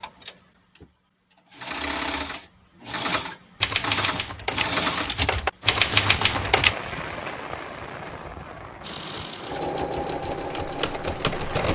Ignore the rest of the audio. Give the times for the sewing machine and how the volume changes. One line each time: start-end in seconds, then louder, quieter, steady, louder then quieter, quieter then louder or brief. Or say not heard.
0.0-6.0 louder
8.8-11.7 brief.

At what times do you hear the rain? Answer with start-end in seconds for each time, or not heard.
5.6-11.7.